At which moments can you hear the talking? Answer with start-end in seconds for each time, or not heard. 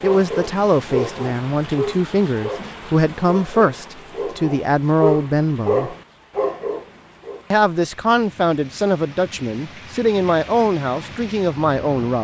0.0-6.0, 7.5-12.2.